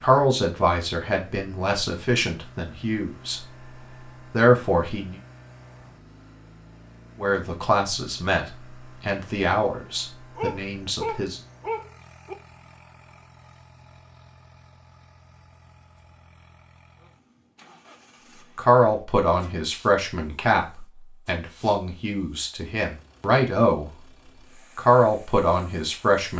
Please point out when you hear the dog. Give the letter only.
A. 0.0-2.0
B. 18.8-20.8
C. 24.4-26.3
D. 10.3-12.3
D.